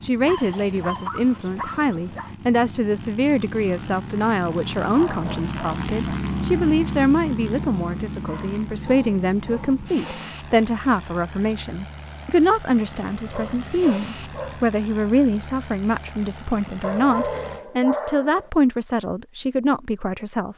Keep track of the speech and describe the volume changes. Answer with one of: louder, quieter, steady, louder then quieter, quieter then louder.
steady.